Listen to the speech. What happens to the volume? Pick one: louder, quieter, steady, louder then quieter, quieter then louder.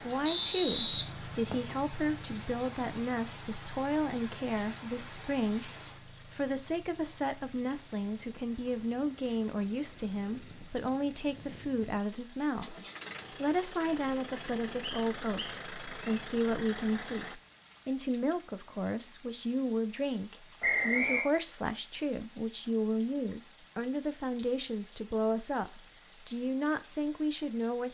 steady.